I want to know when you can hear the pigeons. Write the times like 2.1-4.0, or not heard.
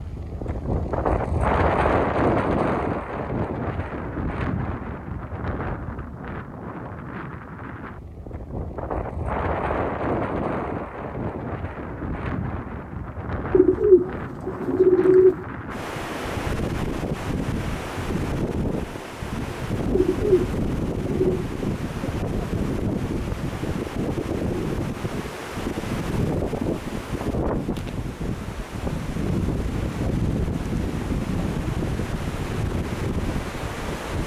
13.5-15.4, 19.9-21.4.